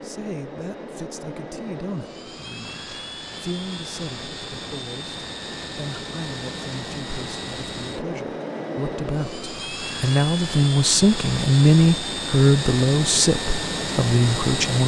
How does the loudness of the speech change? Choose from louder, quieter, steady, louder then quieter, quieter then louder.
louder.